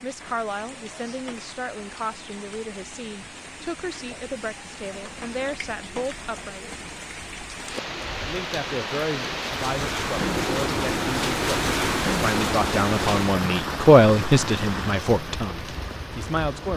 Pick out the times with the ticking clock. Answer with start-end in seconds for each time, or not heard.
not heard.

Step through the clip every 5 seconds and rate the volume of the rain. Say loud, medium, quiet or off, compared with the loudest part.
quiet, medium, loud, medium.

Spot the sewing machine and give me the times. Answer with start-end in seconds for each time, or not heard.
10.2-13.2.